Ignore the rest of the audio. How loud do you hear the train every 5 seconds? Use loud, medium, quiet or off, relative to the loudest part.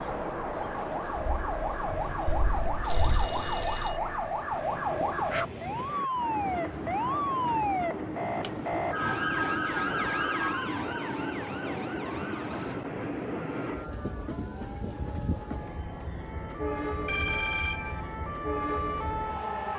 medium, loud, loud, loud.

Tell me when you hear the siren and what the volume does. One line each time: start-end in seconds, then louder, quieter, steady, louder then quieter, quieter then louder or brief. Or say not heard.
0.0-19.7 quieter then louder.